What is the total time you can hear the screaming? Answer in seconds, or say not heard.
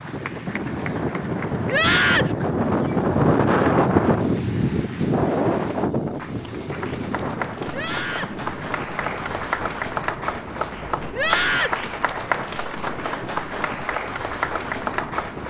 2 s.